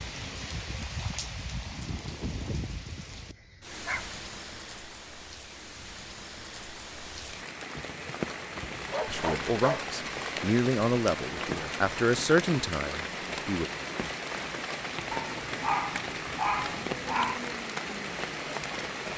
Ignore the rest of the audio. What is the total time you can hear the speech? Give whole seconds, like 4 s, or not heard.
5 s.